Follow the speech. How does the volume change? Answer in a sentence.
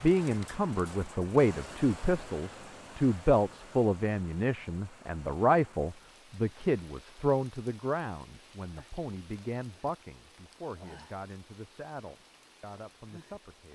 The loudness of the speech goes down.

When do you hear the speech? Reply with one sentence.
You can hear the speech from 0.0 to 13.7 s.